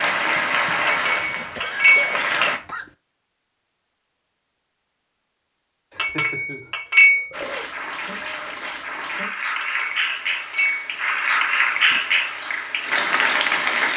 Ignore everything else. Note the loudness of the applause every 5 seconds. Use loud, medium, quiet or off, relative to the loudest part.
loud, medium, loud.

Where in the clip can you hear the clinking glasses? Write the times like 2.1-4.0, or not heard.
0.8-2.5, 6.0-7.2, 9.6-11.3.